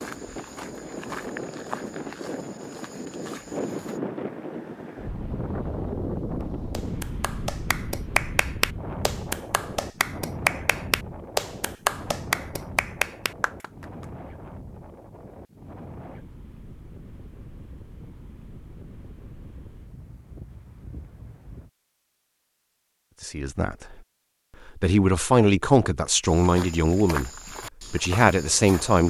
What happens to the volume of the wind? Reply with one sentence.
The loudness of the wind goes down.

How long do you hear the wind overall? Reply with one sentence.
The wind can be heard for 22 seconds in total.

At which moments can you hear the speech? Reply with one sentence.
You can hear the speech from 23.2 to 23.9 s, from 24.6 to 27.3 s and from 27.9 to 29.0 s.